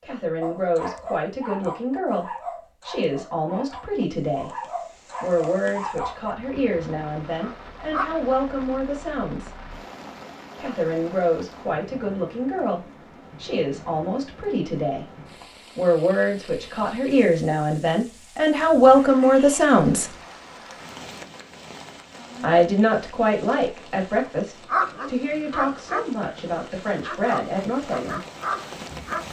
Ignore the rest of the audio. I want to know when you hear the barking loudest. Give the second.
25 s.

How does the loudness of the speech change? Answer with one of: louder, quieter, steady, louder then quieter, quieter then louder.
louder then quieter.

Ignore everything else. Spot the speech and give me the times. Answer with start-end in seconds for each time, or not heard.
0.0-4.5, 5.2-9.6, 10.6-15.1, 15.8-20.1, 22.4-28.2.